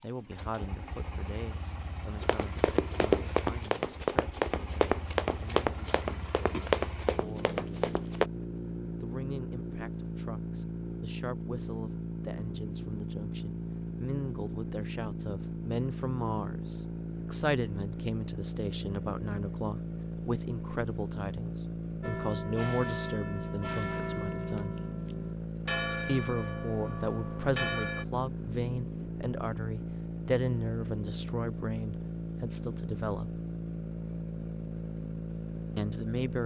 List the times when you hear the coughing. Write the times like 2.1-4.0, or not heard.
not heard.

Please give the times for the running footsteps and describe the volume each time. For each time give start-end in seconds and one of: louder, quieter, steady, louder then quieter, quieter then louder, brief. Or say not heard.
2.2-8.3 quieter.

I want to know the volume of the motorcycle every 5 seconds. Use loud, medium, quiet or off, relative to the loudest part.
medium, loud, loud, loud, loud, loud, loud, loud.